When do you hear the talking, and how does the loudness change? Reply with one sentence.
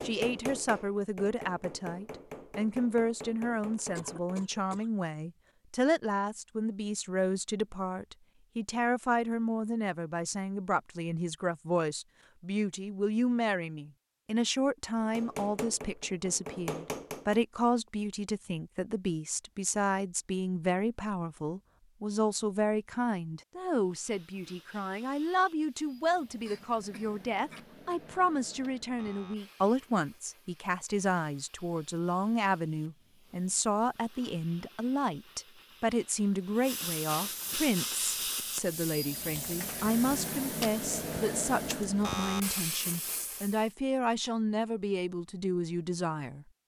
You can hear the talking from 0.0 to 46.5 s, at a steady volume.